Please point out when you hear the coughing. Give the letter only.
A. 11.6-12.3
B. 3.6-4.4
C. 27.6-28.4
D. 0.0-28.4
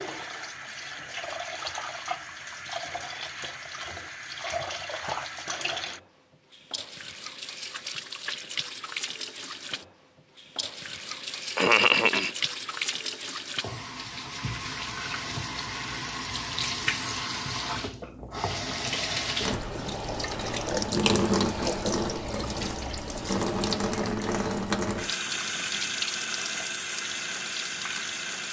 A.